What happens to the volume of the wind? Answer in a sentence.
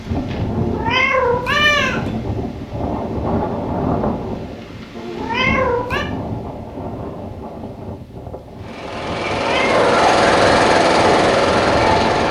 The volume of the wind goes down, then up.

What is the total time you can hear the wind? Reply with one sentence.
You can hear the wind for 12 seconds altogether.